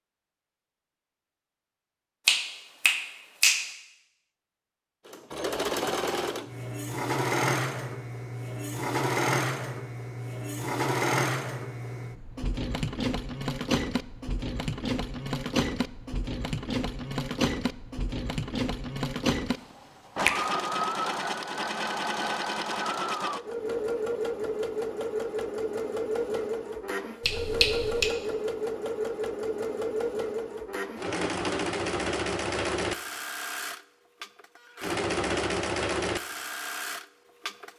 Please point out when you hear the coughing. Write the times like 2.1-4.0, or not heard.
not heard.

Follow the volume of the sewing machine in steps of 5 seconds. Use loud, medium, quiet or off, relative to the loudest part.
off, loud, loud, loud, loud, loud, loud, loud.